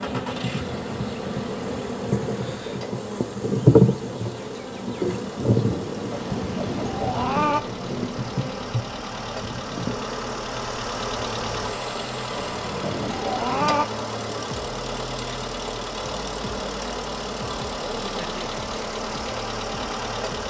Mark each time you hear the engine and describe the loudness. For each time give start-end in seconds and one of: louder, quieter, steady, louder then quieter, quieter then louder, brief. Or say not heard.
0.0-20.4 louder.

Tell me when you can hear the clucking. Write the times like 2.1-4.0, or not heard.
6.1-7.6, 12.3-13.8.